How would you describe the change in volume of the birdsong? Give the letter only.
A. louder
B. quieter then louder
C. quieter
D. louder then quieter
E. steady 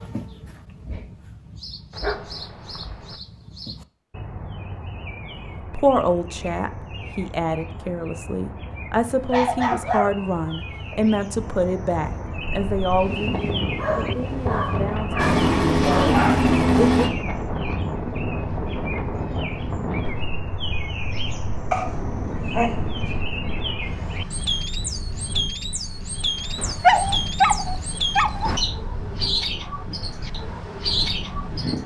A.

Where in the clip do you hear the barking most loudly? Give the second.
27 s.